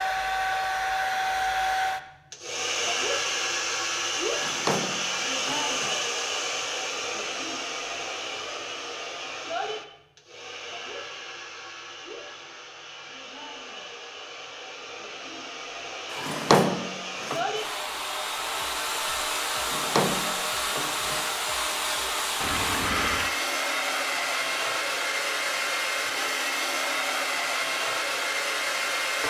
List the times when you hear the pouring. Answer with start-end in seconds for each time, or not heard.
22.4-23.4.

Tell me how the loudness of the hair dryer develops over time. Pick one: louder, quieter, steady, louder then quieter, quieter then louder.
quieter then louder.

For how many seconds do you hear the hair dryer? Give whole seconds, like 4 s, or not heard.
29 s.